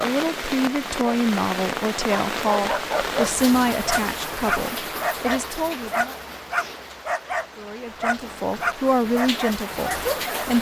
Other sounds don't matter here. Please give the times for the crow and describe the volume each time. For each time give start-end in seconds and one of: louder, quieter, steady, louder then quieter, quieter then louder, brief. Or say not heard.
not heard.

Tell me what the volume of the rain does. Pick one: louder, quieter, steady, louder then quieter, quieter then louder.
quieter then louder.